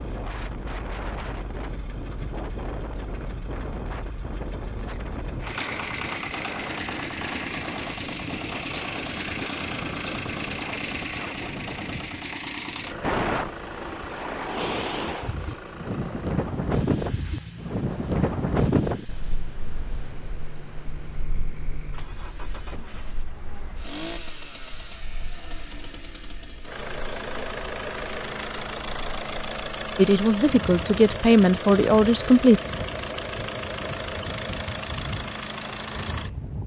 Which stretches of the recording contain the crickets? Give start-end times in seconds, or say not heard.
not heard.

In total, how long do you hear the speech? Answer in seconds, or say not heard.
3 s.